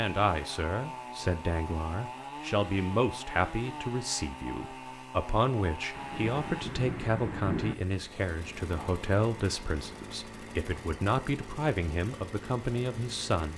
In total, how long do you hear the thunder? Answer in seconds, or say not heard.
2 s.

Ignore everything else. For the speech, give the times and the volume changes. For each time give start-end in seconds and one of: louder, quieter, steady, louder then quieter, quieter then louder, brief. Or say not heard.
0.0-13.5 steady.